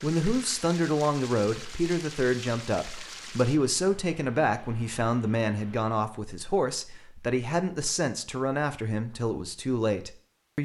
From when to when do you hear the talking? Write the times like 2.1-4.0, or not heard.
0.0-10.6.